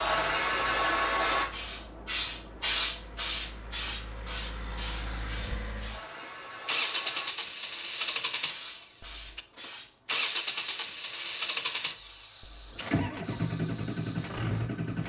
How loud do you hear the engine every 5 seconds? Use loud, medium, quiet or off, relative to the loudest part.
quiet, loud, loud.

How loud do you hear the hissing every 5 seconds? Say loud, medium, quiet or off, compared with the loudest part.
loud, quiet, quiet.